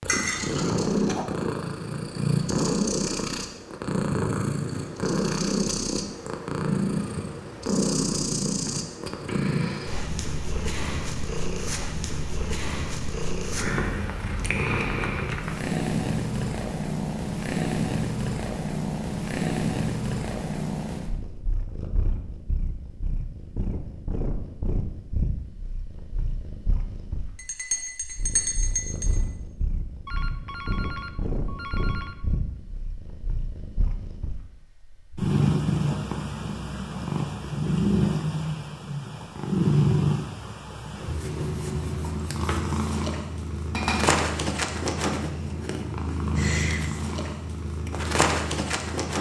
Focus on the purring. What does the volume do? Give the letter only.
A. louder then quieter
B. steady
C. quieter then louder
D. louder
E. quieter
C.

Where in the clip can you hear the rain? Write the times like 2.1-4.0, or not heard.
not heard.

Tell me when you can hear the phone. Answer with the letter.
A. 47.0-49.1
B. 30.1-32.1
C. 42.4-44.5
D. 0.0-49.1
B.